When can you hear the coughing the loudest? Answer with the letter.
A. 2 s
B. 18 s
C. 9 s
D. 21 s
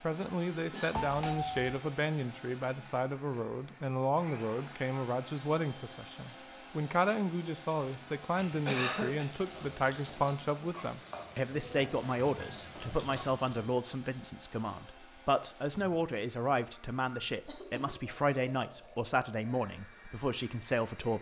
C.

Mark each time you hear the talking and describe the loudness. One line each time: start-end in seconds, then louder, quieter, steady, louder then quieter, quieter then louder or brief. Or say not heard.
0.0-21.1 steady.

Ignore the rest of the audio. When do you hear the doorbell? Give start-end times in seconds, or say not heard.
0.9-1.7.